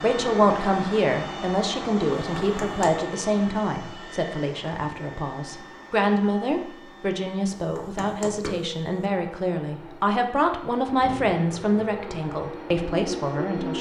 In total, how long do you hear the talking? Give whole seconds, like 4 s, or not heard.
14 s.